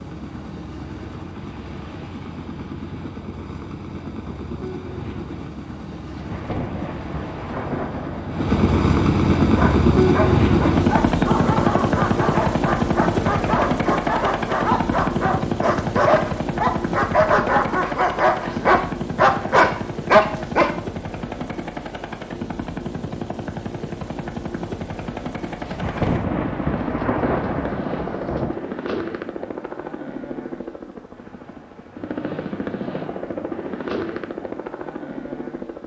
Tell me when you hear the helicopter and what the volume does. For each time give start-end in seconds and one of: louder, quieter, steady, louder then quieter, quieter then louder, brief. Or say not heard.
0.0-35.8 louder then quieter.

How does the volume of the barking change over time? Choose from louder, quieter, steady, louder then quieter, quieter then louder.
louder.